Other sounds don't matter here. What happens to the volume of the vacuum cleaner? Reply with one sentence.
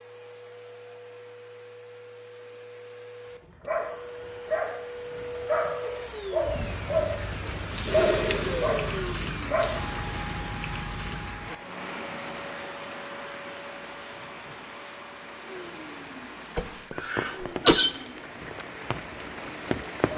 The loudness of the vacuum cleaner goes up, then down.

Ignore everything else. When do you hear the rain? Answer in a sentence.
You can hear the rain from 6.3 to 20.1 s.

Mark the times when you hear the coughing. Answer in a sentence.
You can hear the coughing from 16.6 to 17.9 s.